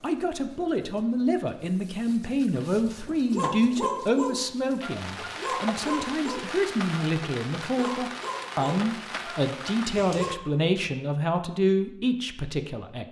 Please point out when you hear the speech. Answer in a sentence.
The speech can be heard from 0.0 to 13.0 s.